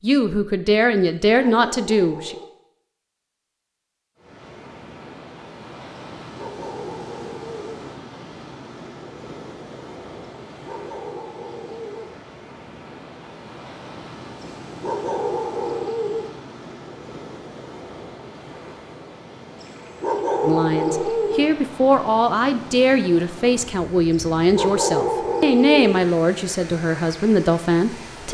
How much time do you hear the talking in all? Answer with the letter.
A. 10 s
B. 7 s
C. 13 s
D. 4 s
A.